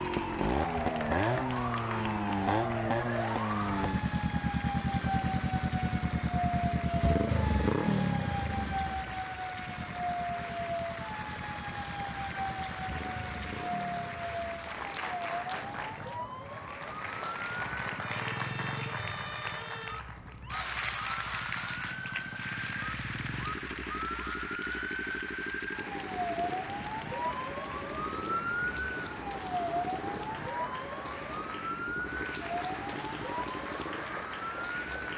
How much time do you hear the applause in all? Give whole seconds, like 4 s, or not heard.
35 s.